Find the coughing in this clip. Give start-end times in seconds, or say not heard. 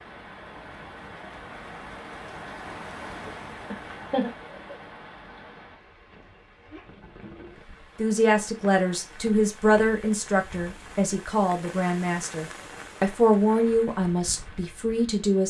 3.7-4.8.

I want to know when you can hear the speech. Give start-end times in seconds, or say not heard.
8.0-15.4.